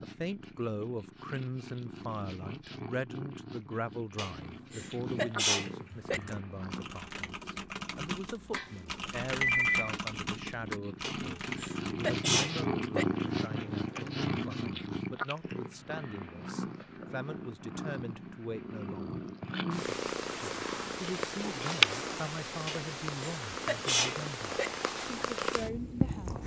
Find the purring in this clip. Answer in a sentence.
The purring can be heard from 0.0 to 26.4 s.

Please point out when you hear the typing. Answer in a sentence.
You can hear the typing from 5.9 to 14.2 s.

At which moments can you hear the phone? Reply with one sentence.
You can hear the phone from 8.6 to 9.9 s.